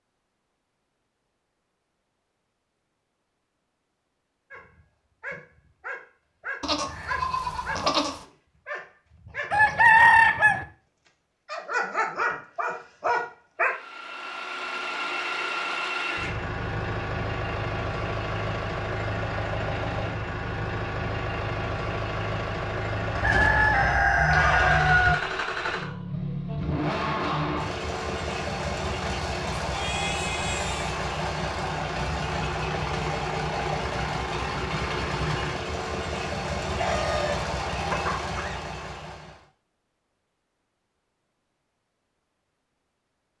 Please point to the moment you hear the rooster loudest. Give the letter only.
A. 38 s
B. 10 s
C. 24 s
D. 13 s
B.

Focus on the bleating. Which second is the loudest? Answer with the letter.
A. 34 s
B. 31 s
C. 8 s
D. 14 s
C.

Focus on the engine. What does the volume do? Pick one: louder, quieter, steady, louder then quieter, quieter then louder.
steady.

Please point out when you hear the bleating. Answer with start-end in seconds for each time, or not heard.
6.6-8.2, 29.6-30.9.